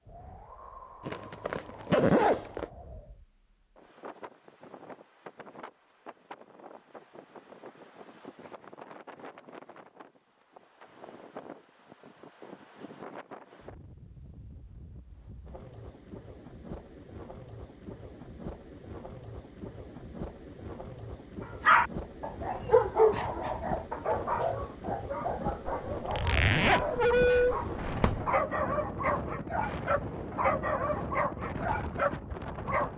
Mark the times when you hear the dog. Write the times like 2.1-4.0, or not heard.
21.6-32.9.